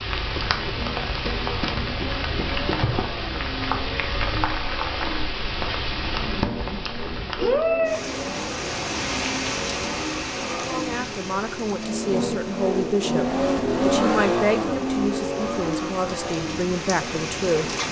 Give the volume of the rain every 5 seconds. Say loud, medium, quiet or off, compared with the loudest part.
loud, loud, medium, medium.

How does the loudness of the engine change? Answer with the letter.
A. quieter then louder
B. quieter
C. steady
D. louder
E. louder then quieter
D.